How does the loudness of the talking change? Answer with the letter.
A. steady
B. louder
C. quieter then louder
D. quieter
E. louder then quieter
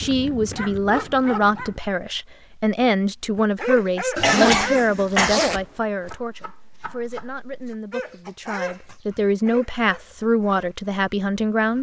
C.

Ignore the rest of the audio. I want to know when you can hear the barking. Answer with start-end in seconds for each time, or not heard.
0.0-1.8, 3.4-5.0, 7.9-11.1.